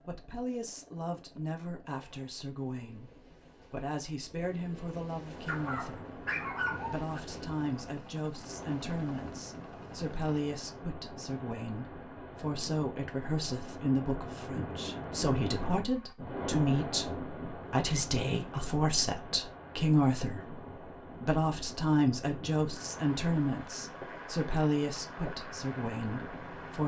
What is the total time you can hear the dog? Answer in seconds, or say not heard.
2 s.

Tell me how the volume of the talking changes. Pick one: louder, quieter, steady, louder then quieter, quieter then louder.
louder.